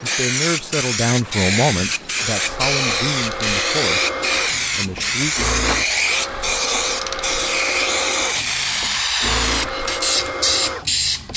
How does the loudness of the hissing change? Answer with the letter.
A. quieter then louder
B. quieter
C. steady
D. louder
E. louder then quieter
C.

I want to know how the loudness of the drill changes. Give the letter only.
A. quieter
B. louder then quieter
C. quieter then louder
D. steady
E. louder
D.